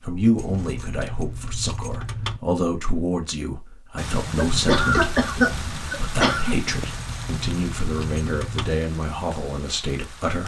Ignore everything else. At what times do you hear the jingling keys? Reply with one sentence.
You can hear the jingling keys from 0.3 to 2.4 s and from 6.7 to 8.7 s.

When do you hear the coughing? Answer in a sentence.
The coughing can be heard from 4.3 to 6.5 s.